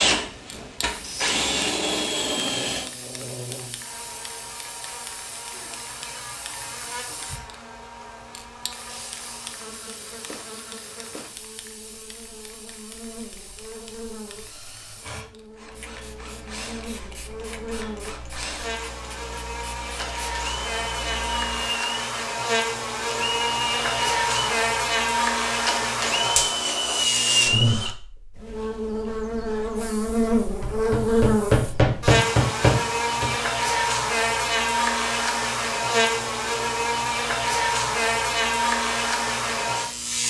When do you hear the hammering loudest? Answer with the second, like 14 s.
32 s.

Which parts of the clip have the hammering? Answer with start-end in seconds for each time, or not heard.
30.6-33.3.